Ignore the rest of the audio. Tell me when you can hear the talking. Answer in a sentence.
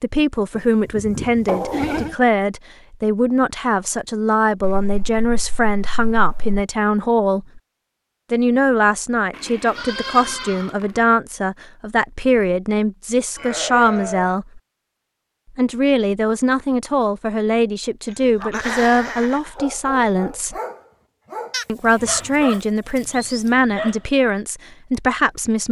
The talking can be heard from 0.0 to 7.6 s, from 8.3 to 14.6 s, from 15.6 to 20.6 s and from 21.6 to 25.6 s.